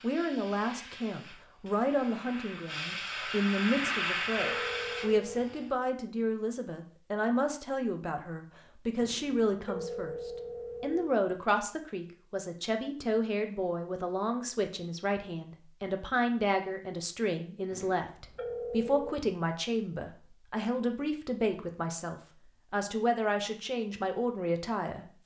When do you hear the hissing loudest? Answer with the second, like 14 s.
4 s.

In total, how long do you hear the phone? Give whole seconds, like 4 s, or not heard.
5 s.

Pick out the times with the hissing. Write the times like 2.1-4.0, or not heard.
0.0-5.7.